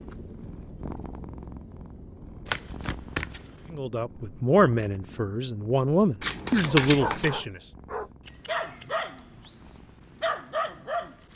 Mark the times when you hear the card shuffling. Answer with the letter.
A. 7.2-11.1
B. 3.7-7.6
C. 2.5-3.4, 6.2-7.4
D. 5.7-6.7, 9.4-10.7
C.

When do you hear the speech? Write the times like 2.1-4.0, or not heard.
3.7-7.6.